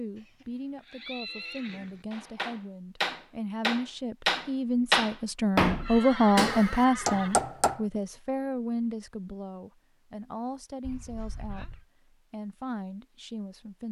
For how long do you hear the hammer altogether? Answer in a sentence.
You can hear the hammer for 6 seconds altogether.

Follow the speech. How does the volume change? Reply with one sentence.
The volume of the speech goes up, then down.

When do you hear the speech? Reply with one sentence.
The speech can be heard from 0.0 to 13.8 s.